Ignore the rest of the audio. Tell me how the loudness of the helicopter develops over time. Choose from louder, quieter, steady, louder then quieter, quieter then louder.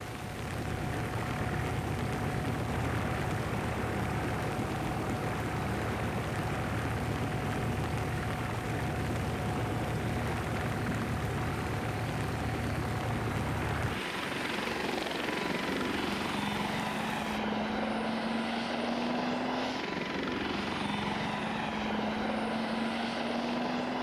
steady.